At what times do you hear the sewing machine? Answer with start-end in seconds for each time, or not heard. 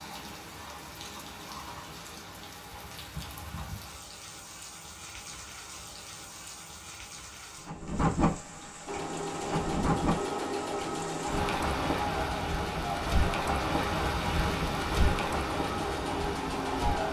8.8-17.0.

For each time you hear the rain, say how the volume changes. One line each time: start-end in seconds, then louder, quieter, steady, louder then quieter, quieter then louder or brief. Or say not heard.
0.0-17.0 louder.